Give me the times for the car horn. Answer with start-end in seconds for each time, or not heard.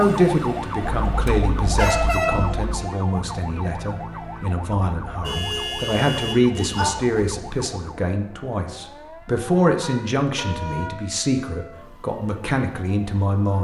0.8-2.8, 5.2-6.9, 9.8-10.9.